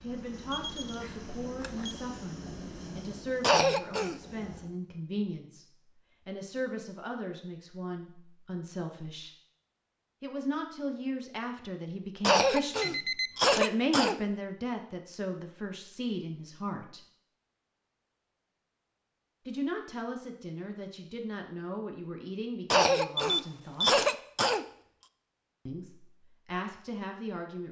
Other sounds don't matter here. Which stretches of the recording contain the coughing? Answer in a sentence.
The coughing can be heard from 3.4 to 4.2 s, from 12.2 to 14.2 s and from 22.7 to 24.6 s.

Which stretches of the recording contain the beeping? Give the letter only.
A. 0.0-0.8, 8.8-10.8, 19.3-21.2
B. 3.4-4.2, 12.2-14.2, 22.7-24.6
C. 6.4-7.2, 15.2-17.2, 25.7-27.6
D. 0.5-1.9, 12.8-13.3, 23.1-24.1
D.